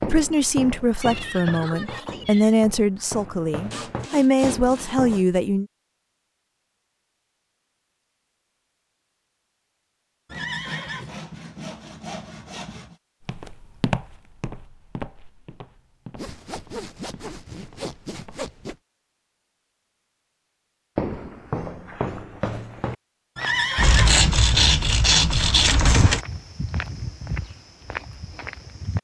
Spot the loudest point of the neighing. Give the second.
24 s.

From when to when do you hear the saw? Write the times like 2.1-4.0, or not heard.
3.7-5.2, 10.3-12.9, 16.1-18.8, 23.8-26.2.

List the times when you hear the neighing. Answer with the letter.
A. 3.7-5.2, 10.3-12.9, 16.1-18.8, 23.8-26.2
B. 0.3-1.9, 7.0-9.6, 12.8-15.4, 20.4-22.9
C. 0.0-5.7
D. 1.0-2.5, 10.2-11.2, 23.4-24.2
D.